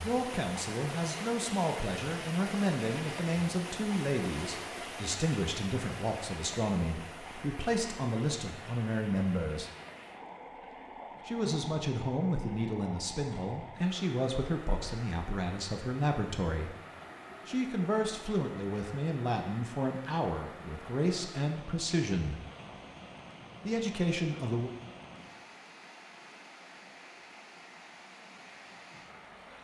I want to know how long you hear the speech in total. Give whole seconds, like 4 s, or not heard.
21 s.